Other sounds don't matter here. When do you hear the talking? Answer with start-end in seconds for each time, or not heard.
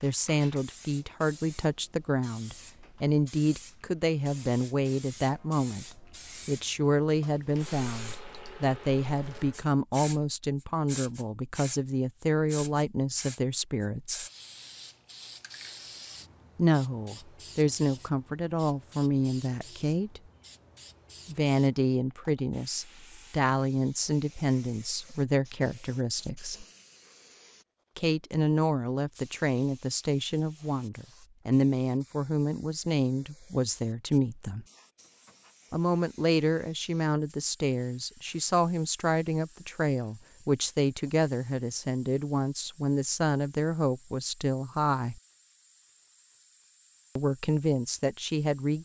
0.0-14.2, 16.6-20.2, 21.2-26.6, 27.9-34.6, 35.7-45.2, 47.1-48.8.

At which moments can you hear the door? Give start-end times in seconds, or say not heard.
not heard.